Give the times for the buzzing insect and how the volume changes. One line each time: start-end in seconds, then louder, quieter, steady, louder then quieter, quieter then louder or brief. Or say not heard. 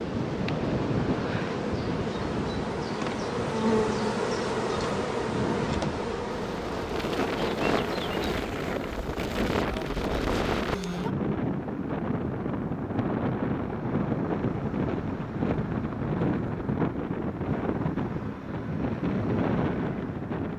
0.0-8.3 louder then quieter.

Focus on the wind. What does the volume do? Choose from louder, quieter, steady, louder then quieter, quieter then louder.
steady.